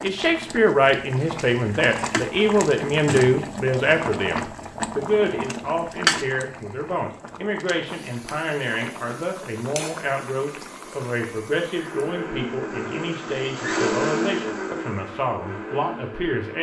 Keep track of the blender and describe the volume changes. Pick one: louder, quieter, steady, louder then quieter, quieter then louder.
louder then quieter.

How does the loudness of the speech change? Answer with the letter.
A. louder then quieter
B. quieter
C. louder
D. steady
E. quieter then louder
B.